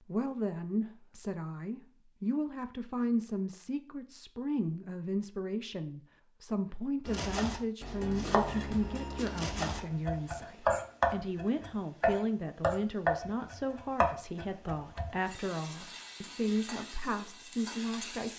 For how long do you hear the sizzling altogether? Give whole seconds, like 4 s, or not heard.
3 s.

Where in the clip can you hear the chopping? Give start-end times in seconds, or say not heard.
7.0-15.4.